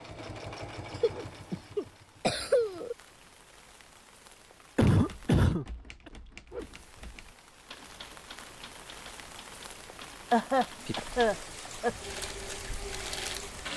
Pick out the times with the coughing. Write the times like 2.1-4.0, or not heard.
0.9-3.0, 4.8-6.1, 10.3-11.9.